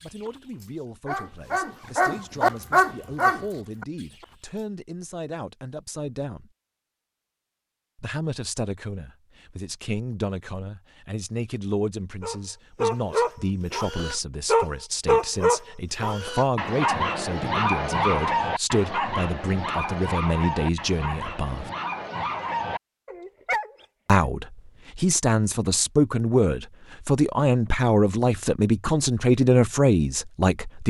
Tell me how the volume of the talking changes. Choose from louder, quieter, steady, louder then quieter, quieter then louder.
louder.